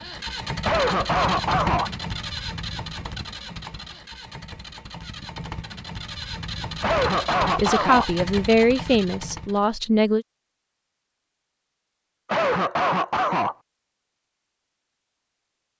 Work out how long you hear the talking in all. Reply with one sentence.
The talking can be heard for 3 seconds in total.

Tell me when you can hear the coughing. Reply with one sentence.
The coughing can be heard from 0.6 to 1.9 s, from 6.8 to 8.1 s and from 12.2 to 13.6 s.